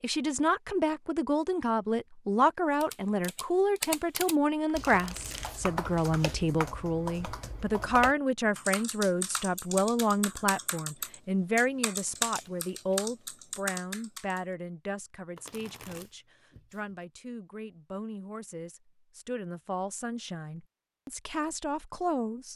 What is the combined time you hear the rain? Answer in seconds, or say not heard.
not heard.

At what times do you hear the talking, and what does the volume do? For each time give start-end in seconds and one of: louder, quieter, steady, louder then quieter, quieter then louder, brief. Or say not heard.
0.0-22.5 quieter.